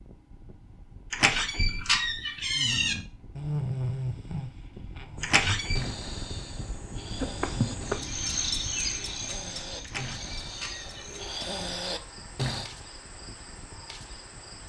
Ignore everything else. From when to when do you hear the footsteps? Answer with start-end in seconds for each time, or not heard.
not heard.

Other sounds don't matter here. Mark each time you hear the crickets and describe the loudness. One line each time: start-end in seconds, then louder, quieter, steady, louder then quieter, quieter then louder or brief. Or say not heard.
5.3-14.6 louder then quieter.